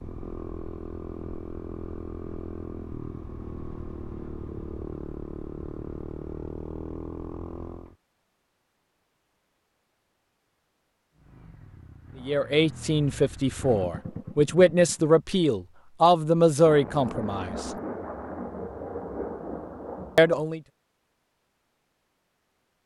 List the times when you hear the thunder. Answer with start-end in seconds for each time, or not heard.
16.6-20.4.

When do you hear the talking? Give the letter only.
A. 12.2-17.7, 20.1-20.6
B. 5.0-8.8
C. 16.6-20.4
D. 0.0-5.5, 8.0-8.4
A.